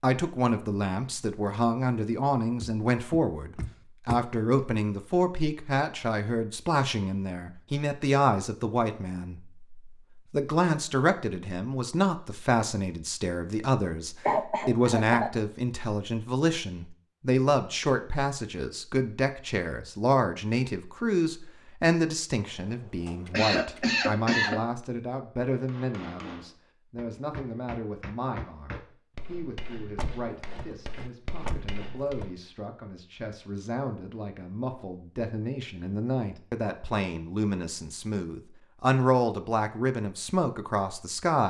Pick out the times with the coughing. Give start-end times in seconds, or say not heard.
14.2-15.3, 23.3-24.6.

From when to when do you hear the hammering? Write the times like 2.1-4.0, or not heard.
25.4-32.4.